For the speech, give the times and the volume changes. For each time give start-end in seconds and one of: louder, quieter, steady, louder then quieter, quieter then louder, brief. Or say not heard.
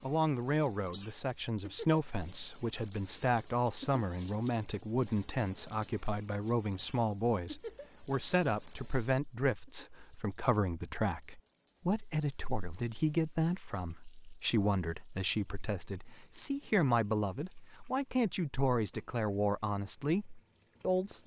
0.0-21.2 steady.